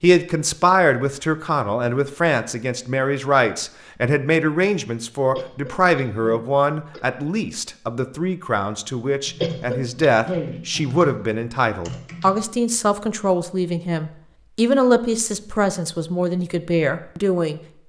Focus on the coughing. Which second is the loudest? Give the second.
10 s.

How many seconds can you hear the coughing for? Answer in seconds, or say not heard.
3 s.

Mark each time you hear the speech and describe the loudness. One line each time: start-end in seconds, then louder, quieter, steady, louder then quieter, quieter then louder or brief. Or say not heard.
0.0-17.8 steady.